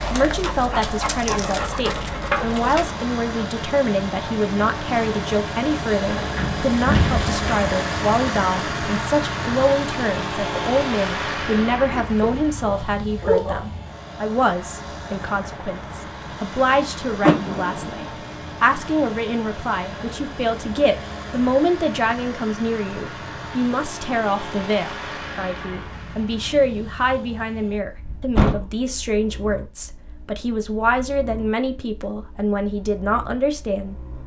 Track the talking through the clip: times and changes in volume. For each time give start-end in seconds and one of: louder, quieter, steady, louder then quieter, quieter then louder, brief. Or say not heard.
0.0-34.0 steady.